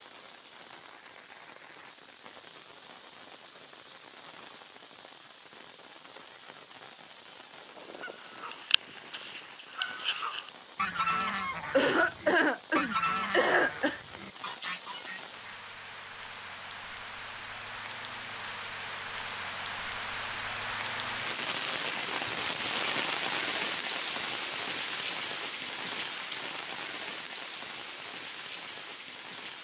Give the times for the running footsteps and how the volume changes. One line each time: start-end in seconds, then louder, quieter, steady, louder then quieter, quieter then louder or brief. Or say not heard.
not heard.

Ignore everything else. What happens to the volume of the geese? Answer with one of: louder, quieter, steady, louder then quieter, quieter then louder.
louder then quieter.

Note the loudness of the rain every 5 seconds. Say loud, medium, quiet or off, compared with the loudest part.
quiet, quiet, quiet, medium, loud, medium.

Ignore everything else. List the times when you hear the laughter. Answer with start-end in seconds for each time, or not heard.
11.7-14.0.